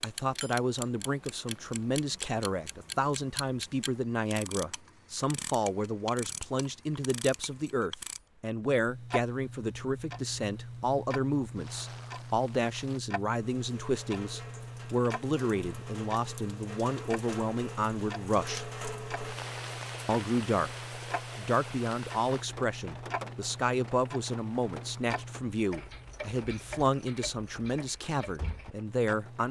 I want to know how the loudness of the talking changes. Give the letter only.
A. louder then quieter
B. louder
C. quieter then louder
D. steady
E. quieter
D.